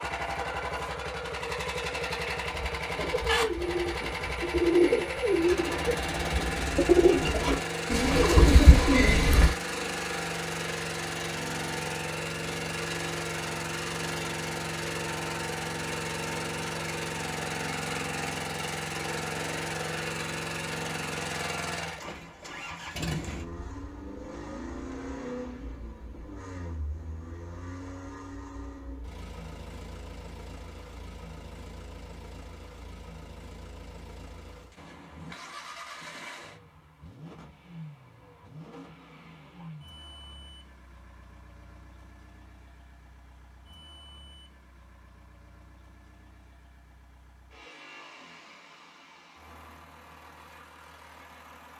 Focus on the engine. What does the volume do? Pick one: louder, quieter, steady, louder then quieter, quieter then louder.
quieter.